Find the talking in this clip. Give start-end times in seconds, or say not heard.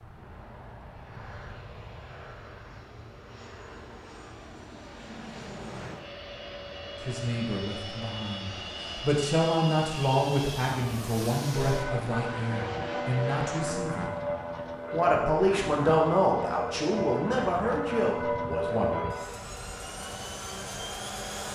7.0-14.1, 14.9-19.0.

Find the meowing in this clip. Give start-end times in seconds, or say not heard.
not heard.